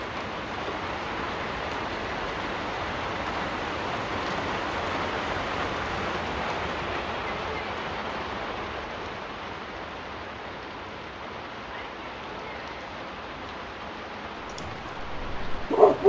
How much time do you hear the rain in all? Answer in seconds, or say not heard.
16 s.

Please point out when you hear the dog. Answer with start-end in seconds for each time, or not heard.
14.6-16.0.